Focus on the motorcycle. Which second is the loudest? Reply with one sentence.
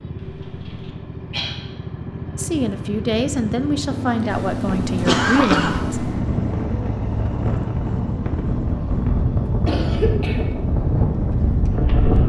The loudest moment of the motorcycle is at 5 seconds.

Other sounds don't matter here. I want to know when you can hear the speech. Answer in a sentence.
You can hear the speech from 2.4 to 6.0 s.